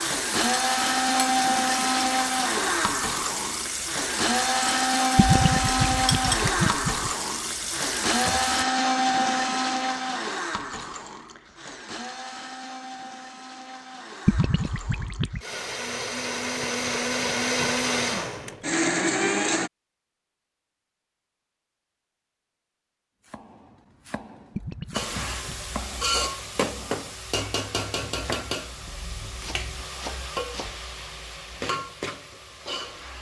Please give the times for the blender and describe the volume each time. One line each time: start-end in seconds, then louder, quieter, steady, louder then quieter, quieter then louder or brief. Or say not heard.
0.0-19.7 quieter then louder.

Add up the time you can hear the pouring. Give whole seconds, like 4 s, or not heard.
4 s.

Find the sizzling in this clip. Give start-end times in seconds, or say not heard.
0.0-8.7, 24.9-33.1.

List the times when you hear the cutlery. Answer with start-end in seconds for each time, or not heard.
not heard.